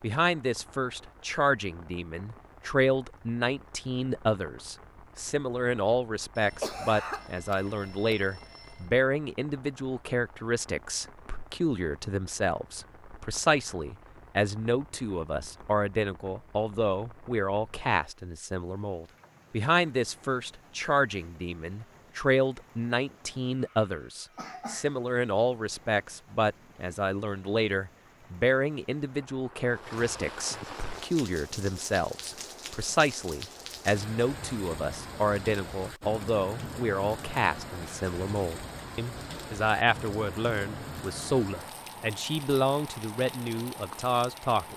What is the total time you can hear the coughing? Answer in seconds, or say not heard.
3 s.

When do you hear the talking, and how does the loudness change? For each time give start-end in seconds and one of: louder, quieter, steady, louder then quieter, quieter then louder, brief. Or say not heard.
0.0-44.7 steady.